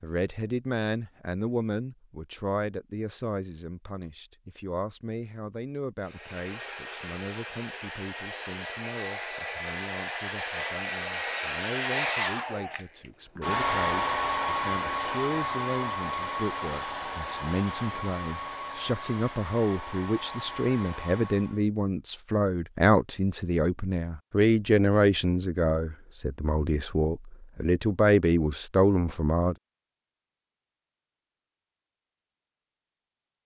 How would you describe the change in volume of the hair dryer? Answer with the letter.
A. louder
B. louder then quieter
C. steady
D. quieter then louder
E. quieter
B.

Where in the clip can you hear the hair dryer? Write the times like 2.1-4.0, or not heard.
6.0-21.6.